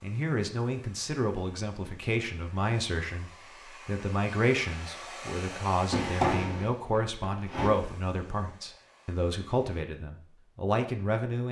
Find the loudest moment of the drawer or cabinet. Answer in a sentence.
The loudest moment of the drawer or cabinet is at 6 seconds.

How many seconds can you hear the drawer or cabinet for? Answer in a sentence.
The drawer or cabinet can be heard for 2 seconds in total.